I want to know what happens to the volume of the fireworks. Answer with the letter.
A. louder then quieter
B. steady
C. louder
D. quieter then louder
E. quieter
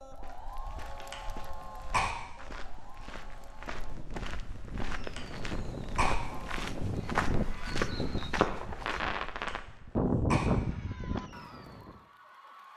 C.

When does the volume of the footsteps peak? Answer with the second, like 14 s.
7 s.